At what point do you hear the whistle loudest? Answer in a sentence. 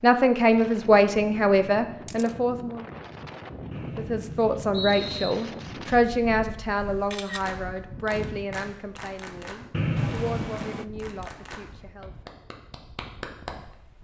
The loudest moment of the whistle is at 10 seconds.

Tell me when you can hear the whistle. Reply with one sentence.
You can hear the whistle from 3.7 to 5.3 s and from 9.7 to 10.6 s.